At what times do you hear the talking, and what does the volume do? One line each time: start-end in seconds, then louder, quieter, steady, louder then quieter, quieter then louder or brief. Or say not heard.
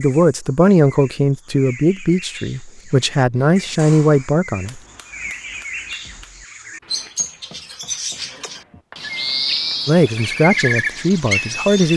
0.0-4.8 quieter then louder
9.8-11.9 brief.